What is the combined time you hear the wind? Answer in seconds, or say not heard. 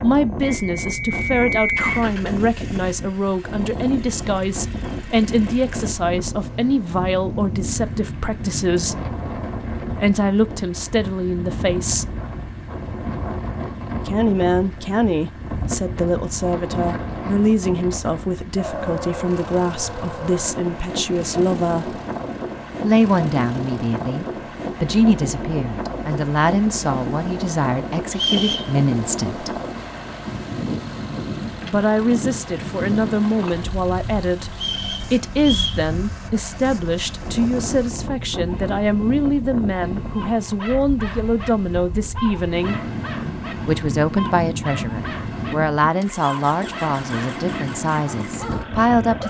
49 s.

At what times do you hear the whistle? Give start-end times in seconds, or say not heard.
0.5-1.9, 28.1-28.7, 34.6-35.8.